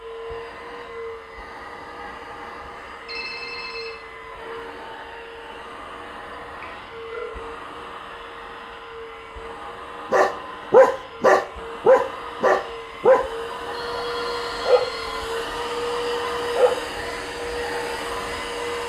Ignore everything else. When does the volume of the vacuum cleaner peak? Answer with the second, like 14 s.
16 s.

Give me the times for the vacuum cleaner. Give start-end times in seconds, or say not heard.
0.0-18.8.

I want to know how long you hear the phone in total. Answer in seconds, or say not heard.
3 s.